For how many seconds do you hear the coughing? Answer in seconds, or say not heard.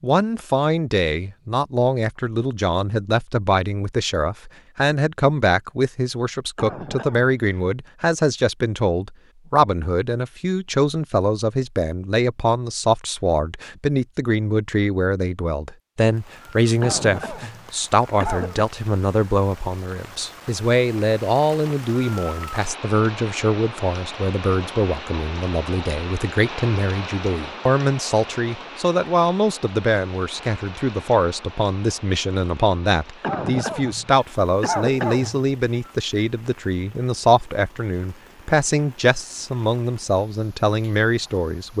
6 s.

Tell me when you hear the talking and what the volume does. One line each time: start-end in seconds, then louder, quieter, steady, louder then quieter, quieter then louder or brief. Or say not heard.
0.0-41.7 steady.